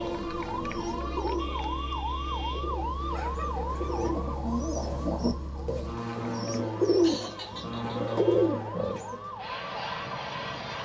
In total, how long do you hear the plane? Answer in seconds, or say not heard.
11 s.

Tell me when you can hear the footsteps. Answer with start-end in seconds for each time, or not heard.
not heard.